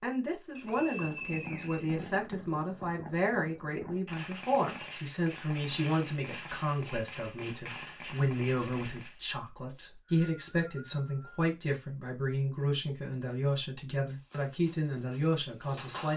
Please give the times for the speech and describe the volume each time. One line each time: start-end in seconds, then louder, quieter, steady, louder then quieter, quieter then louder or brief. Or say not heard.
0.0-16.1 steady.